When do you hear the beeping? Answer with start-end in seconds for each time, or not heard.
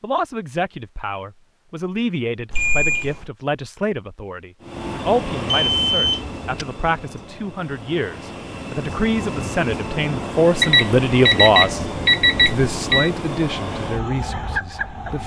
2.5-3.2, 5.5-6.7, 10.6-13.1.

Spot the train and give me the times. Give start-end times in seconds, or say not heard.
4.6-15.2.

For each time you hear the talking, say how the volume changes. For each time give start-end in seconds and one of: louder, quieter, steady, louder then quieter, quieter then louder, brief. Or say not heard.
0.0-11.8 louder
12.4-15.2 brief.